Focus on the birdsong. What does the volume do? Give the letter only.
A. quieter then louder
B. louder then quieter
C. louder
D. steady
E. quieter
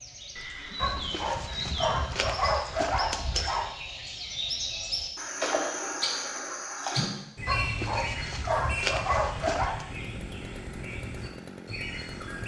B.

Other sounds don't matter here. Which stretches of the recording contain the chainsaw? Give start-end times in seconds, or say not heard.
9.8-12.4.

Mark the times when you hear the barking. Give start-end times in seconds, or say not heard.
0.8-3.8, 7.5-9.8.